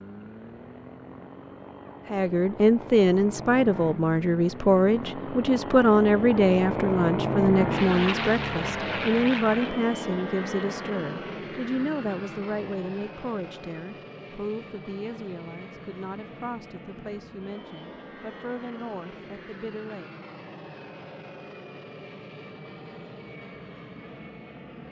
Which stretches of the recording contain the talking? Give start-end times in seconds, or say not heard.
2.1-20.1.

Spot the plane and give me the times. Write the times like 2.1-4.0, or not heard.
0.0-24.8.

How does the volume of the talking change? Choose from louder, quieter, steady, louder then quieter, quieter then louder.
quieter.